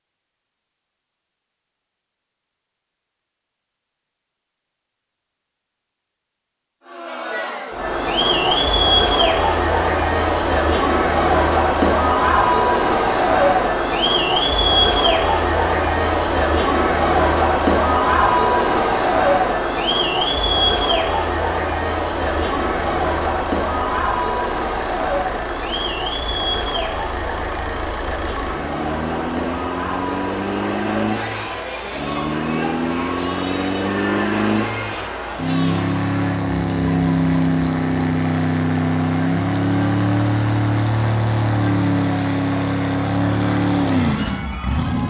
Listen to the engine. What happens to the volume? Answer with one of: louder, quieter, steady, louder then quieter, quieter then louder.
louder.